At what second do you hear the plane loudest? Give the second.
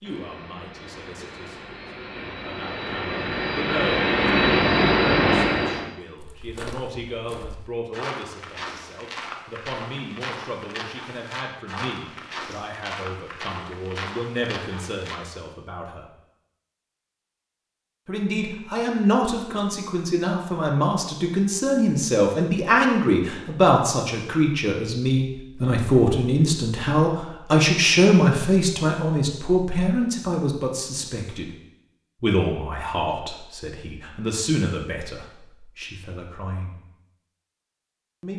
5 s.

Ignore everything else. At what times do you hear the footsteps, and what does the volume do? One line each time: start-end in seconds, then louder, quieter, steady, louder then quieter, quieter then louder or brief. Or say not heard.
6.2-15.2 steady.